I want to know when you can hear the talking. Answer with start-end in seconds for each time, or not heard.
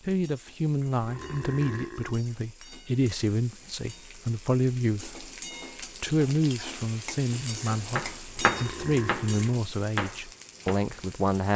0.0-11.5.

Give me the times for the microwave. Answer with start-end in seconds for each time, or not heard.
not heard.